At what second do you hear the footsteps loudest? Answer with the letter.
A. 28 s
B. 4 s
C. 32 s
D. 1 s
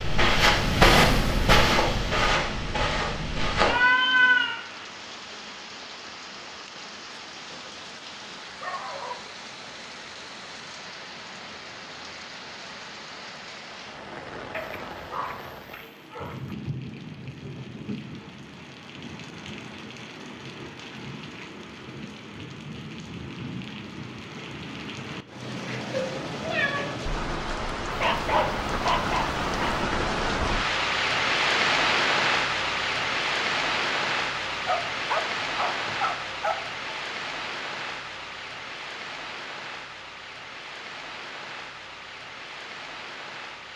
D.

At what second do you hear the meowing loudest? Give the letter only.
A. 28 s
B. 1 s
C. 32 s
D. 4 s
D.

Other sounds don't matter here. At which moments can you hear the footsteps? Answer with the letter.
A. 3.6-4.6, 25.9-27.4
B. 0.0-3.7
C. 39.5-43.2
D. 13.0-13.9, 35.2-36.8
B.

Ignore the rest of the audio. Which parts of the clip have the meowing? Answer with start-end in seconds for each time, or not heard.
3.6-4.6, 25.9-27.4.